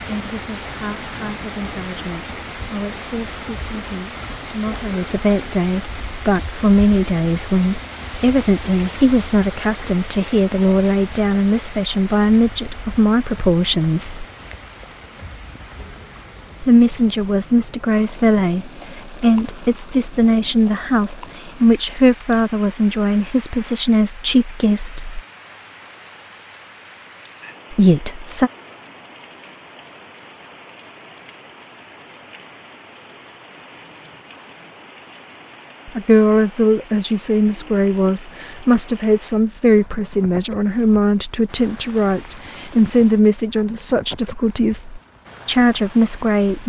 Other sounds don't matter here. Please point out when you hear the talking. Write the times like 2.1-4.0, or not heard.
0.0-14.2, 16.6-25.2, 27.7-28.5, 35.9-46.6.